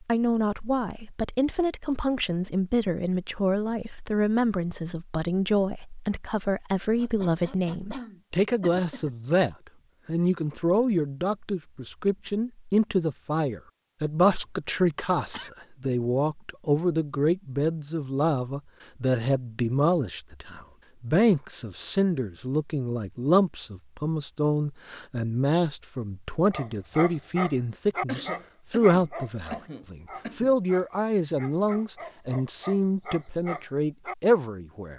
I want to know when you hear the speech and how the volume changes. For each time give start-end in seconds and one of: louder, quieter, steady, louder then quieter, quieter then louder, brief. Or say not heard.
0.0-34.9 steady.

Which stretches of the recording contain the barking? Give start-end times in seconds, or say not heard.
26.5-34.1.